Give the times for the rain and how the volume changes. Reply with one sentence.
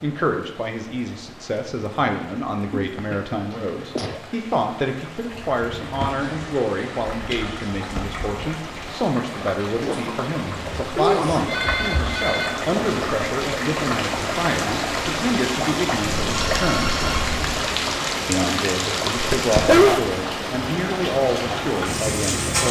The rain can be heard from 0.0 to 22.6 s, getting louder.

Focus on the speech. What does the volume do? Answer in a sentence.
The loudness of the speech stays about the same.